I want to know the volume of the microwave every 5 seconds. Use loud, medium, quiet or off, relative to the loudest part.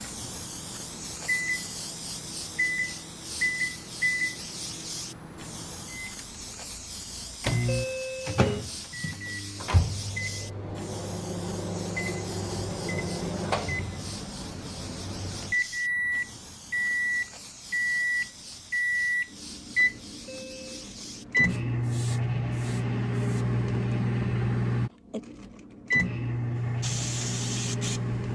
medium, medium, medium, loud, loud, loud.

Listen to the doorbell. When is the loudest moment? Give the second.
8 s.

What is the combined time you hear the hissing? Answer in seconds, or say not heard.
25 s.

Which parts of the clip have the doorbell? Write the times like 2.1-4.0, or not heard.
7.7-8.7, 20.2-20.9.